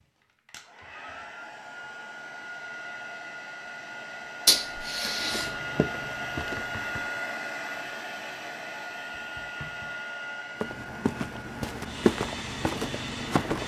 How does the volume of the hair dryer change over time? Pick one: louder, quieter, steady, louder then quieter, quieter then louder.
louder then quieter.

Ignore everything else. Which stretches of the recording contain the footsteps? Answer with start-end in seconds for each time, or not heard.
5.2-7.1, 10.6-13.6.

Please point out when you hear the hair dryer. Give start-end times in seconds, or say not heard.
0.5-13.6.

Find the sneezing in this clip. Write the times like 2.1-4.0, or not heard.
4.5-5.5.